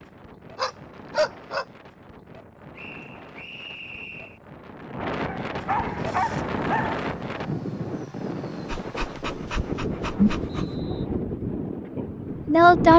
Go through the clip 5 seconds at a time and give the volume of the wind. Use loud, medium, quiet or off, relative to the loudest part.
quiet, loud, loud.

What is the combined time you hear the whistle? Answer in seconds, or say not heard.
2 s.